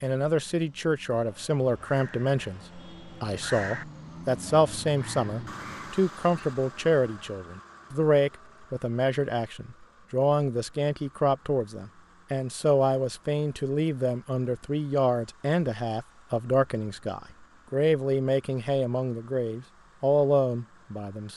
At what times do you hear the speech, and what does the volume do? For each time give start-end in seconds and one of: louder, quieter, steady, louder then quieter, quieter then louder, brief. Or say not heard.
0.0-21.3 steady.